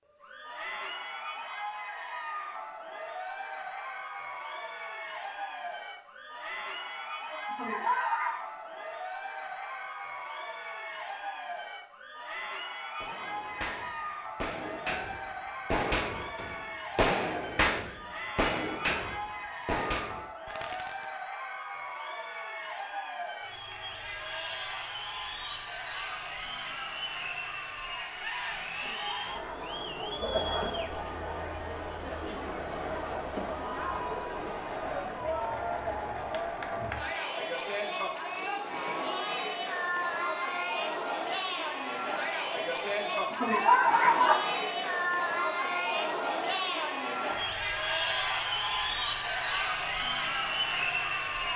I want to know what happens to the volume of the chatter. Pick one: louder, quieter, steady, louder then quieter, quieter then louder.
louder.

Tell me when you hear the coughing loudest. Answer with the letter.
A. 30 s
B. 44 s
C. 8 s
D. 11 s
B.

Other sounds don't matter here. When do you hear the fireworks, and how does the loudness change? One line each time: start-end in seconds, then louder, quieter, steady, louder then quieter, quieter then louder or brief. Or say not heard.
13.0-21.1 louder then quieter.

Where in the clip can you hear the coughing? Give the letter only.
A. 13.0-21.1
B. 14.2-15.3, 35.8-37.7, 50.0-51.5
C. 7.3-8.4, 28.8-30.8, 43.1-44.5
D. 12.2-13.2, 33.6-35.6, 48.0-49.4
C.